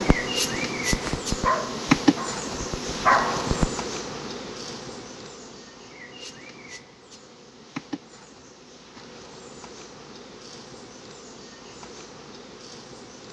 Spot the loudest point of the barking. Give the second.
3 s.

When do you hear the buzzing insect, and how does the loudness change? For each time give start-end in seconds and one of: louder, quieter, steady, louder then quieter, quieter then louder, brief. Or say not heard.
0.0-13.2 quieter.